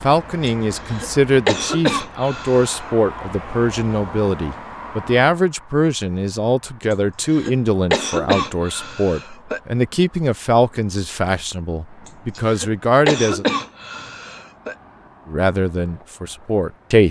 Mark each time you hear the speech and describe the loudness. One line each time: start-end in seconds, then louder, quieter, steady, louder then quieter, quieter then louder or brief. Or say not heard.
0.0-13.4 steady
15.2-17.0 brief.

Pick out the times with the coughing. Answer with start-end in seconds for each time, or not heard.
0.5-2.9, 6.9-9.6, 12.1-14.8.